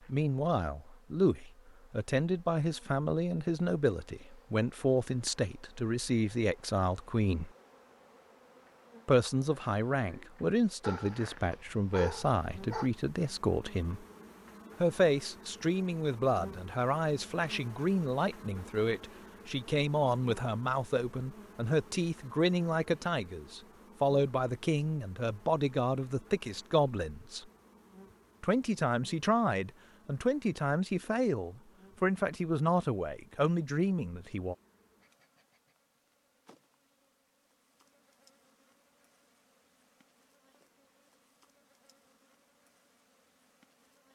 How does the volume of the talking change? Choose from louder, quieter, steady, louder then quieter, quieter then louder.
steady.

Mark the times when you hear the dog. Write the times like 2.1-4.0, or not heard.
10.8-12.9.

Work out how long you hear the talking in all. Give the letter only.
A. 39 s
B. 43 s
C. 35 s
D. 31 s
D.